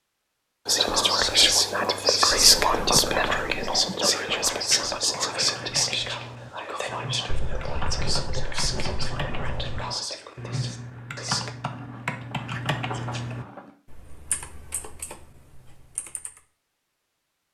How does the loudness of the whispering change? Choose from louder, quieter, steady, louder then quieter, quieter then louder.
quieter.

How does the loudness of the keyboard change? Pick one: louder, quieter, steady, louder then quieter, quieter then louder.
louder then quieter.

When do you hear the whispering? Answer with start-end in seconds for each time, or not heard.
0.7-11.5.